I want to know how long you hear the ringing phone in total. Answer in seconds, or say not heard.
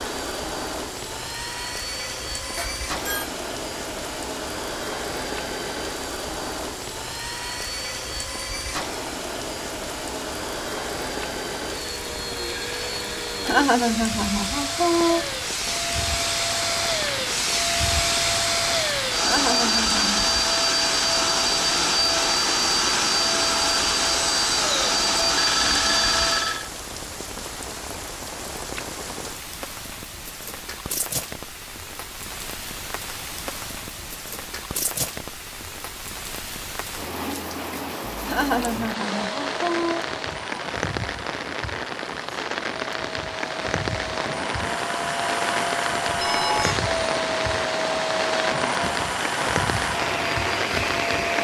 3 s.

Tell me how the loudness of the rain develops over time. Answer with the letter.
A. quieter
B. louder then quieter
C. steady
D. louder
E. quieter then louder
D.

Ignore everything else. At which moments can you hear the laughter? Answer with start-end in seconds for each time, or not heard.
13.4-15.2, 19.2-20.2, 38.2-40.0.